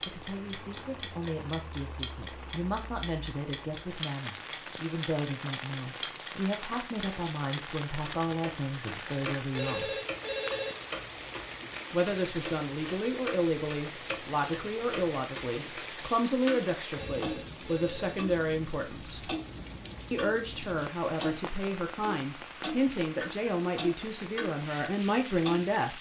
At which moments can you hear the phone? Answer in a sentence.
The phone can be heard from 9.6 to 10.9 s and from 16.9 to 18.1 s.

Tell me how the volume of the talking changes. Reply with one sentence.
The loudness of the talking goes up.